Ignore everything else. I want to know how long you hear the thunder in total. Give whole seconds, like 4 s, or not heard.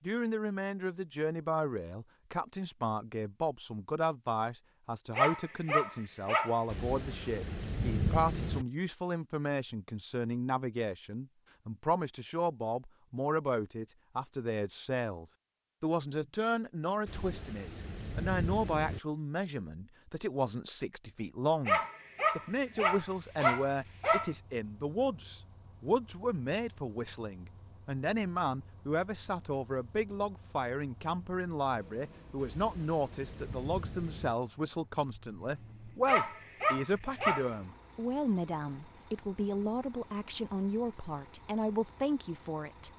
6 s.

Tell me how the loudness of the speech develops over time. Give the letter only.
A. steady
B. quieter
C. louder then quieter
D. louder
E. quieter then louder
A.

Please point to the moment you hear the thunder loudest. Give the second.
8 s.